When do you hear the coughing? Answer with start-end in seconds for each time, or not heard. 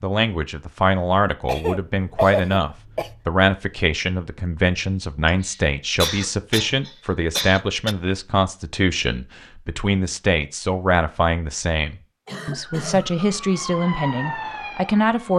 1.4-3.2, 5.2-8.0, 12.2-13.1.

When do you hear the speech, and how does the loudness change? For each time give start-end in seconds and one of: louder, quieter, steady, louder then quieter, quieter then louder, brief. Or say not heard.
0.0-15.3 steady.